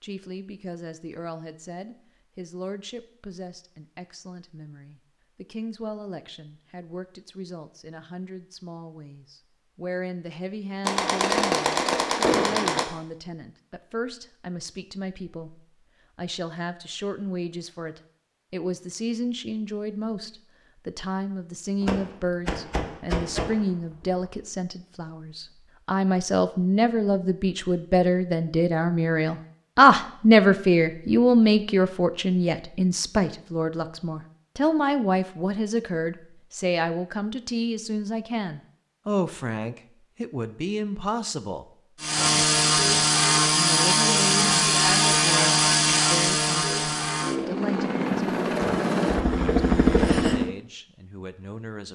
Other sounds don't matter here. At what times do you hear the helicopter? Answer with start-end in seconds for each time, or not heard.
42.0-50.5.